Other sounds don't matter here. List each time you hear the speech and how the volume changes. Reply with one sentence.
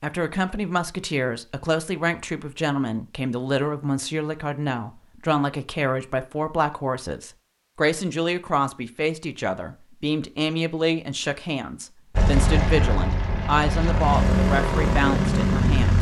The speech can be heard from 0.0 to 15.9 s, at a steady volume.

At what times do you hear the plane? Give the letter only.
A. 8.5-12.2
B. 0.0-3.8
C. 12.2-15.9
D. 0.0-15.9
C.